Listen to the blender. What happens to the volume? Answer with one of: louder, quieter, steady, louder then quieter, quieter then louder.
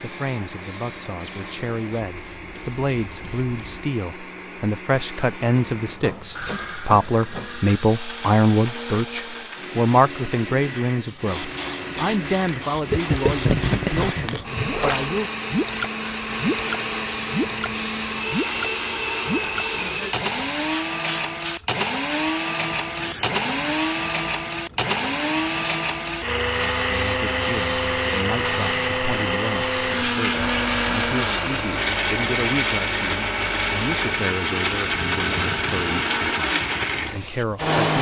louder.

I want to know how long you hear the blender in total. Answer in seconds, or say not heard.
38 s.